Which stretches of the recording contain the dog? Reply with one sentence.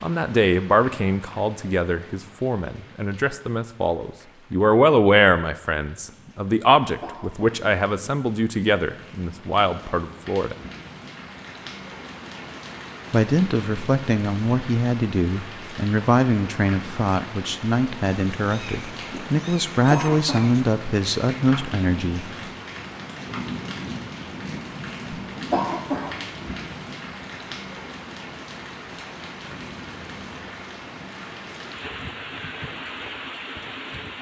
You can't hear the dog here.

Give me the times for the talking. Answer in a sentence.
You can hear the talking from 0.0 to 10.6 s and from 13.1 to 22.2 s.